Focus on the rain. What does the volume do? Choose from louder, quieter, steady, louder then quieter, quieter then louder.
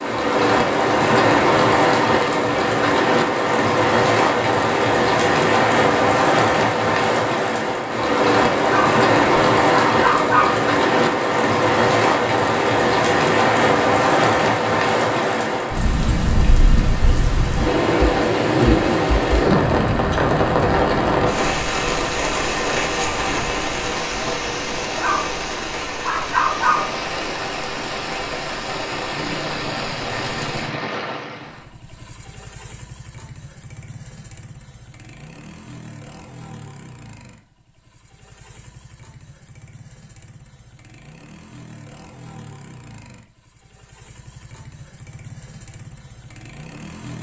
quieter.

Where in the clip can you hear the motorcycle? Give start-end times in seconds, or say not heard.
29.1-47.1.